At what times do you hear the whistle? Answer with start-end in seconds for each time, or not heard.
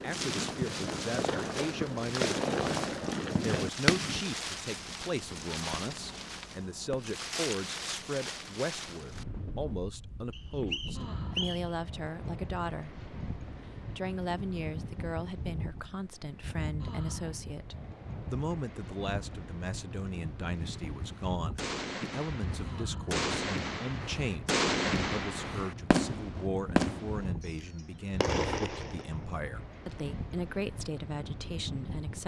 10.3-11.8.